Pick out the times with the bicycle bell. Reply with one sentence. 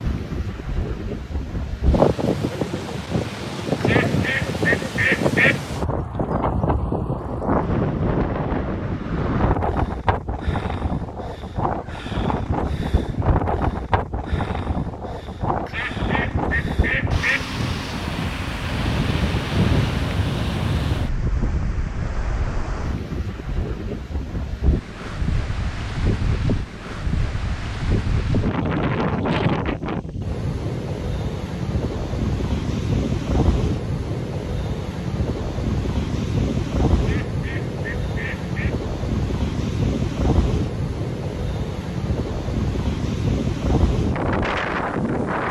You can't hear the bicycle bell here.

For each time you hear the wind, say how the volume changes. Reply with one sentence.
You can hear the wind from 0.0 to 45.4 s, at a steady volume.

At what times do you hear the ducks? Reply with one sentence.
The ducks can be heard from 3.8 to 5.6 s, from 15.7 to 17.5 s and from 37.0 to 38.8 s.